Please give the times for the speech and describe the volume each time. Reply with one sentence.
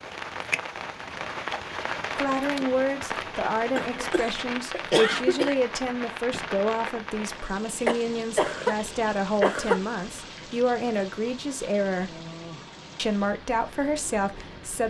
You can hear the speech from 2.1 to 12.2 s, at a steady volume; and briefly from 12.9 to 14.8 s.